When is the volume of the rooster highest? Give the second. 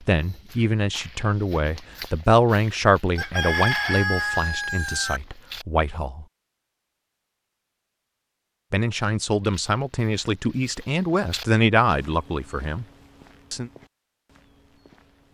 4 s.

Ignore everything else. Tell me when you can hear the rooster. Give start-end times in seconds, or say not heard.
3.1-5.2.